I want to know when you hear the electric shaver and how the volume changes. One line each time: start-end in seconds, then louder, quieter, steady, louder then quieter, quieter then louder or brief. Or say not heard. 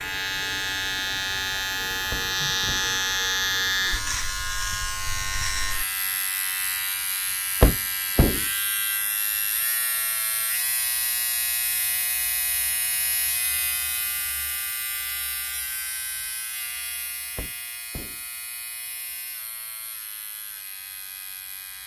0.0-21.8 quieter.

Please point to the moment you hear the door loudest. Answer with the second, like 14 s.
8 s.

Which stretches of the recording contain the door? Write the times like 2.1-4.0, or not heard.
2.1-3.0, 7.6-8.4, 17.4-18.2.